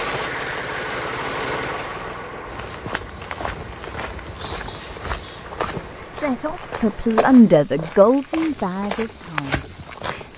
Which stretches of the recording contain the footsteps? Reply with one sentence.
You can hear the footsteps from 2.5 to 10.3 s.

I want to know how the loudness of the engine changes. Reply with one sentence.
The volume of the engine goes down.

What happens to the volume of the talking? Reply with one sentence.
The volume of the talking goes up, then down.